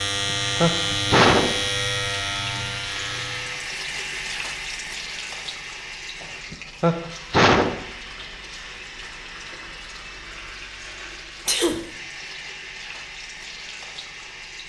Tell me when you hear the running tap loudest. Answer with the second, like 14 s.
4 s.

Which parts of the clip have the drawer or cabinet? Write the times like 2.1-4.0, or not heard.
not heard.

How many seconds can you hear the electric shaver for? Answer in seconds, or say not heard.
4 s.